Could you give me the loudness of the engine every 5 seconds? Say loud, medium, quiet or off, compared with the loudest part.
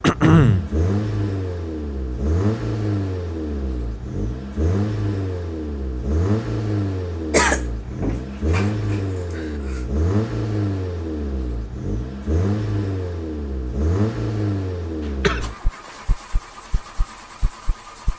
loud, loud, loud, medium.